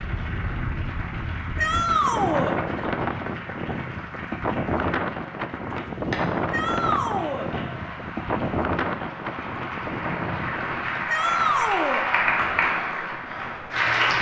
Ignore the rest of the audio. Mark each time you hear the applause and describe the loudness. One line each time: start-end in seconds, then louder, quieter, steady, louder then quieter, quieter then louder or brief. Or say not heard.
0.0-14.1 louder.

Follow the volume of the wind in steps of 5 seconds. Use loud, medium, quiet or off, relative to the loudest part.
loud, loud, medium.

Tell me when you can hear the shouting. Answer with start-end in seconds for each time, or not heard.
1.6-2.5, 6.5-7.5, 11.1-12.1.